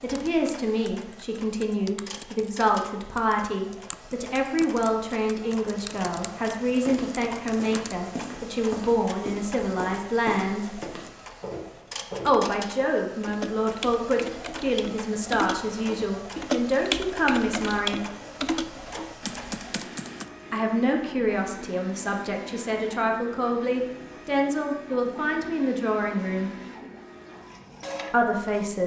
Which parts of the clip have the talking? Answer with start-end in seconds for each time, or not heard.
0.0-10.7, 12.2-18.0, 20.5-26.5, 28.1-28.8.